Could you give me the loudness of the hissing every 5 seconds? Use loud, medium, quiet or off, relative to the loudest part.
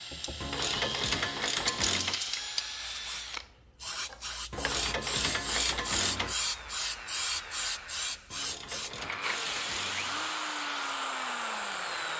loud, loud, medium.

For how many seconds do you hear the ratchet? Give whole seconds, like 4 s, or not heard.
6 s.